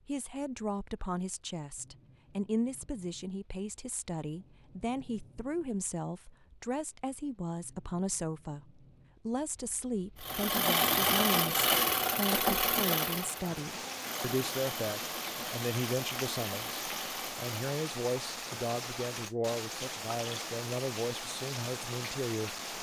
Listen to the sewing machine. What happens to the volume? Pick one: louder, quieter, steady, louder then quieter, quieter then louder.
quieter.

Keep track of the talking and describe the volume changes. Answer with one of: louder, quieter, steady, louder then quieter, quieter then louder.
steady.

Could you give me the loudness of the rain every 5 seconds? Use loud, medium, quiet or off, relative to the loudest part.
quiet, quiet, loud, loud, loud.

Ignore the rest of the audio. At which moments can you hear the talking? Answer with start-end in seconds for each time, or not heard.
0.1-22.6.